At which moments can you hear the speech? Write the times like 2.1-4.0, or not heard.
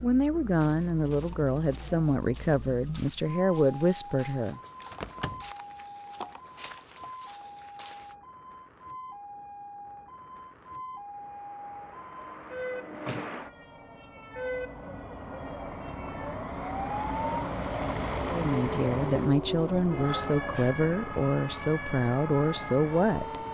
0.0-4.6, 18.2-23.4.